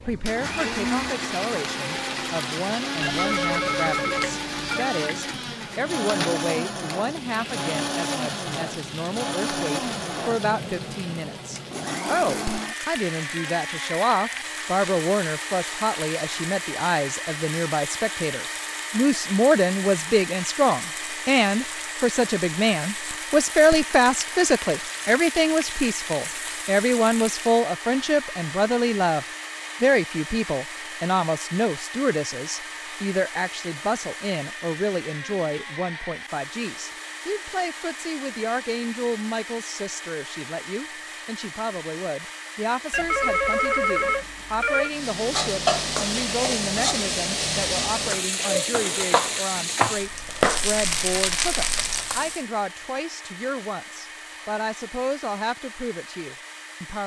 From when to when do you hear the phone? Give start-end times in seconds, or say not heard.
3.0-5.0, 42.9-44.9.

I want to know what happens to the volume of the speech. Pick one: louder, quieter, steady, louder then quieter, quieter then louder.
louder then quieter.